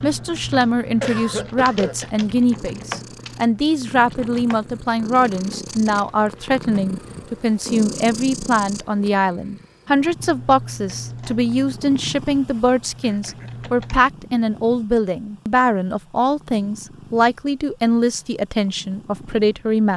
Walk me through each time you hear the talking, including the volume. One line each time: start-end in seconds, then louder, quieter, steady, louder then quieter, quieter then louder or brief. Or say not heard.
0.0-19.9 steady.